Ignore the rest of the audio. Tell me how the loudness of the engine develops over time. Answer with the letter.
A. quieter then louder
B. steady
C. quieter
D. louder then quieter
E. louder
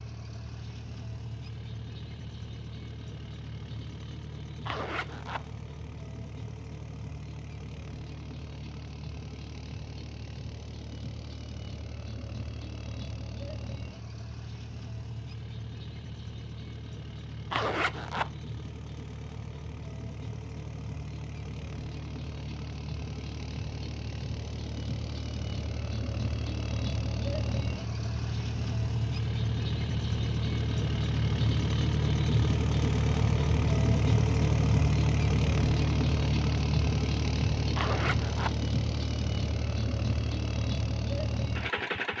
E.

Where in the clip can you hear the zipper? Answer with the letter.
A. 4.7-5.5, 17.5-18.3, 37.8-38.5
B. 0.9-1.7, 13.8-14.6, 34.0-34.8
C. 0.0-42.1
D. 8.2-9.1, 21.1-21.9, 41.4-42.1
A.